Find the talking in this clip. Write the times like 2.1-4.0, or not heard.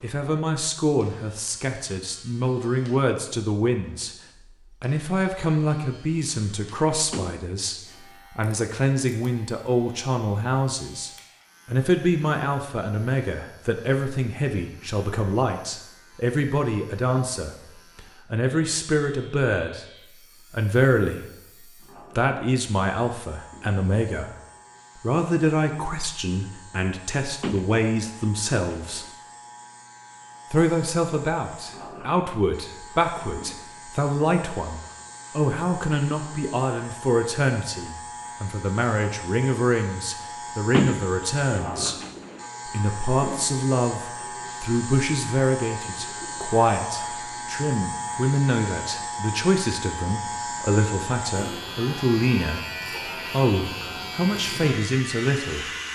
0.0-19.9, 20.5-24.3, 24.9-29.1, 30.5-42.0, 42.6-52.6, 53.3-55.6.